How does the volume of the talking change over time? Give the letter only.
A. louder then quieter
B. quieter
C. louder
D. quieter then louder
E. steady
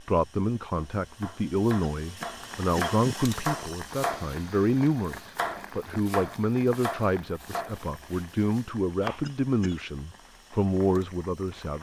E.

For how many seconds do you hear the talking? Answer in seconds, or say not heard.
12 s.